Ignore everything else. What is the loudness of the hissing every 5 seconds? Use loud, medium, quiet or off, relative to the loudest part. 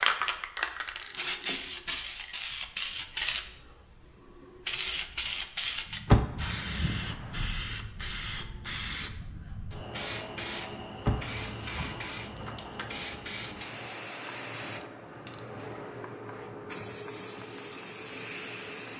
loud, loud, loud, medium.